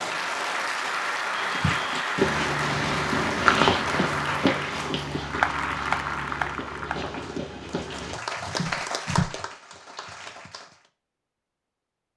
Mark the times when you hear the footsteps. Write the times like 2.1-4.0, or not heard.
1.3-9.3.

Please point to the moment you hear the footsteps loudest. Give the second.
4 s.